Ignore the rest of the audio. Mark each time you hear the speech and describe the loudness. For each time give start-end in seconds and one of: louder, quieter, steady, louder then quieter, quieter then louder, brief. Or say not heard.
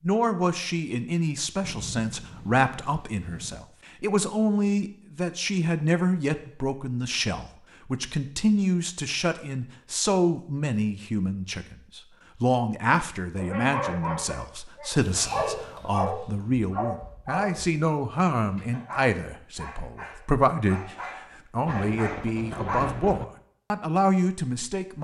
0.0-25.0 steady.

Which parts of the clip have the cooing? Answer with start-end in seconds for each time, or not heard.
not heard.